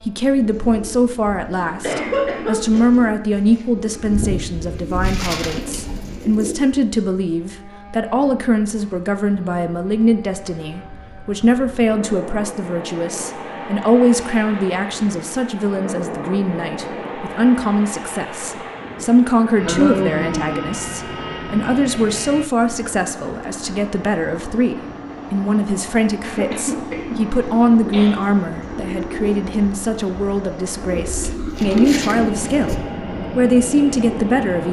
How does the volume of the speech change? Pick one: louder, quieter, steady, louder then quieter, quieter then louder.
steady.